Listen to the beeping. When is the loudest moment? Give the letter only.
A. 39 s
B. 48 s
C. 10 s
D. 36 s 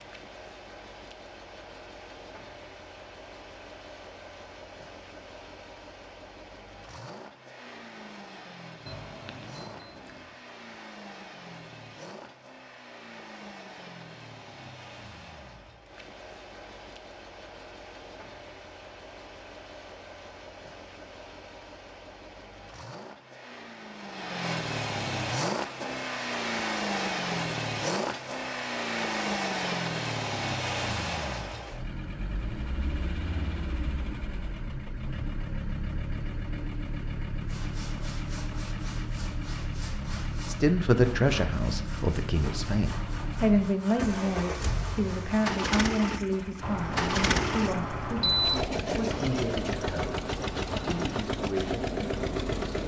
B.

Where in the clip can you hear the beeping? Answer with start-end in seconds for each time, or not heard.
8.8-10.2, 46.6-48.6.